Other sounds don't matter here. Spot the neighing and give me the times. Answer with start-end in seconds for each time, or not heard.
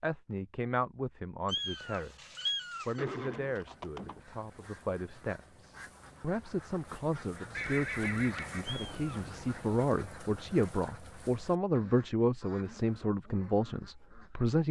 3.0-4.2, 7.5-9.4.